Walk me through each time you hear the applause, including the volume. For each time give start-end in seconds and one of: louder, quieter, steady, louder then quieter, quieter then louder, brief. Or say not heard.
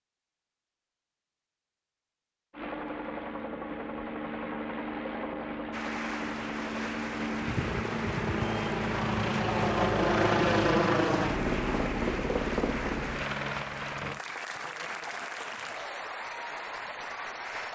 5.7-17.6 steady.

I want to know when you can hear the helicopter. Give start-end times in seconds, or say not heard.
2.5-14.2.